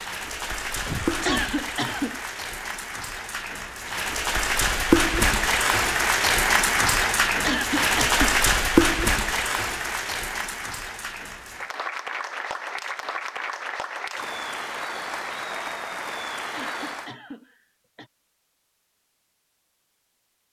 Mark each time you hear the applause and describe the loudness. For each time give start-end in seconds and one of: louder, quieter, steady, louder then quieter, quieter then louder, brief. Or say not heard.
0.0-17.1 louder then quieter.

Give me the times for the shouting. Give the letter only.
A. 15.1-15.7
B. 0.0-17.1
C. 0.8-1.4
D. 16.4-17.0
C.